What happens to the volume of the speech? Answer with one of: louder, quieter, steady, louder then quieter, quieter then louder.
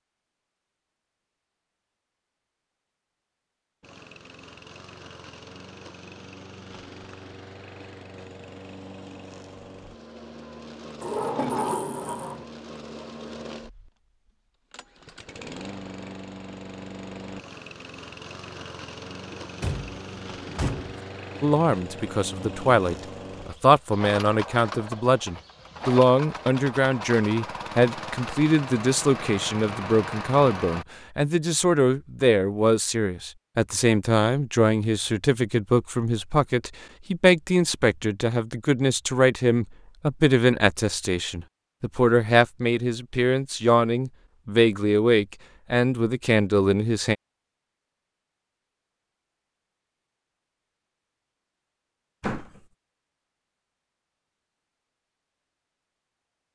steady.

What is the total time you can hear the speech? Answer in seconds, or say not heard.
26 s.